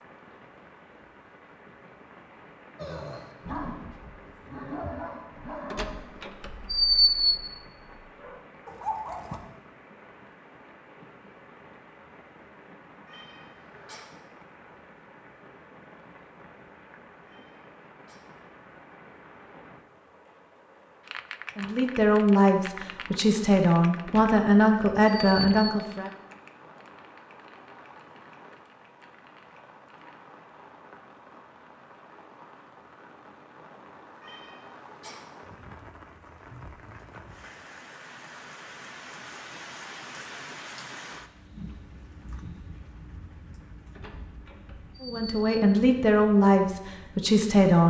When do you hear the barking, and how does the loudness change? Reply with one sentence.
You can hear the barking from 2.8 to 9.4 s, getting quieter then louder.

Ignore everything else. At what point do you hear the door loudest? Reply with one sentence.
The volume of the door peaks at 7 seconds.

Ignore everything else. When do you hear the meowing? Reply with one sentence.
The meowing can be heard from 13.1 to 14.1 s, from 17.3 to 18.2 s and from 34.2 to 35.2 s.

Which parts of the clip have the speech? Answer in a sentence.
You can hear the speech from 21.6 to 26.1 s and from 45.0 to 47.8 s.